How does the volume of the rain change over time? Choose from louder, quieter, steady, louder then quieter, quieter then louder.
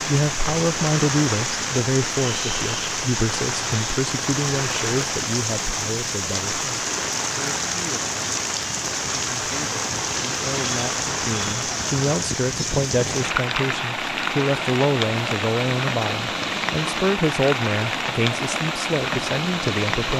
steady.